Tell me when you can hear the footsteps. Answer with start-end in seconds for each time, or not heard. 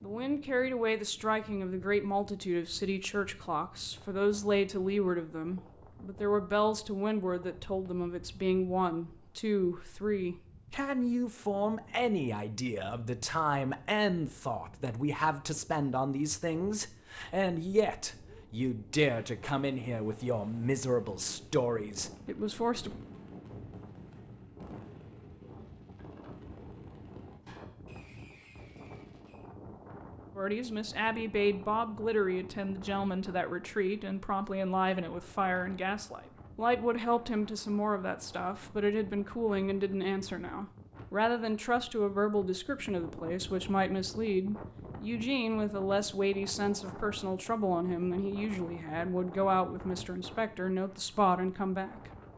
not heard.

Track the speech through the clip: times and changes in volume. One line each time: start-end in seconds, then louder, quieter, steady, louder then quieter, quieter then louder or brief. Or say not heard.
0.0-23.0 steady
30.4-52.1 steady.